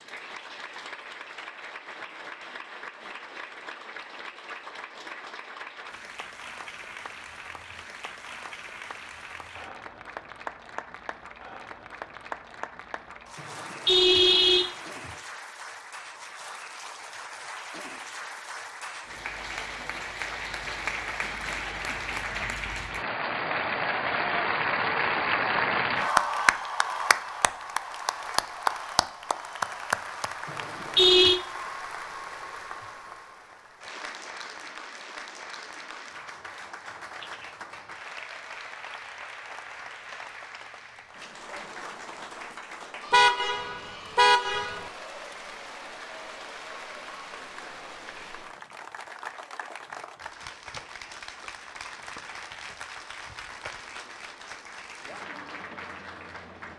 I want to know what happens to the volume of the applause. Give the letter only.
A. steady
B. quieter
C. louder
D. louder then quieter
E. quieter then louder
D.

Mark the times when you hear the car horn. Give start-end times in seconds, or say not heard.
13.3-15.1, 30.4-31.4, 43.1-44.8.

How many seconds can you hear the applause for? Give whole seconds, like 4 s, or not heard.
57 s.